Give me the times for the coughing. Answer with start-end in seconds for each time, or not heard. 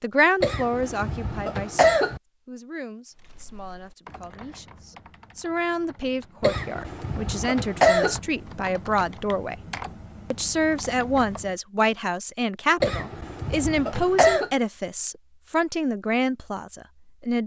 0.4-2.2, 6.4-8.2, 12.8-14.5.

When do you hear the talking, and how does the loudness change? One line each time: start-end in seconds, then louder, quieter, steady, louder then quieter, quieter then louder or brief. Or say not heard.
0.0-9.6 quieter then louder
10.3-17.4 steady.